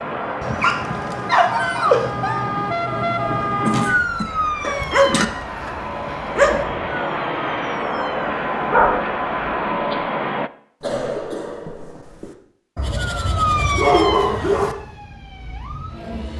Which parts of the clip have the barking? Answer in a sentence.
You can hear the barking from 0.4 to 2.5 s, from 4.6 to 6.7 s, from 8.7 to 10.1 s and from 12.8 to 14.8 s.